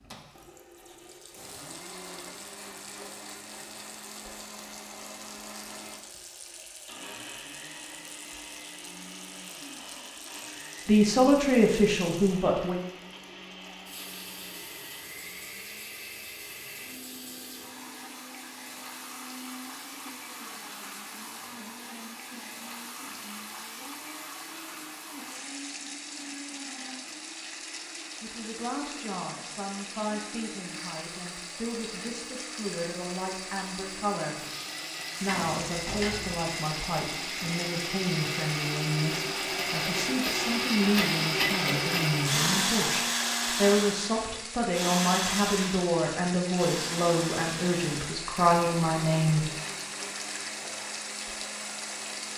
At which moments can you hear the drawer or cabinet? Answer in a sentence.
The drawer or cabinet can be heard from 35.2 to 36.5 s.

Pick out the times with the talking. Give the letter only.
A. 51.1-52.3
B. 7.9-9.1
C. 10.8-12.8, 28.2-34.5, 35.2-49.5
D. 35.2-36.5
C.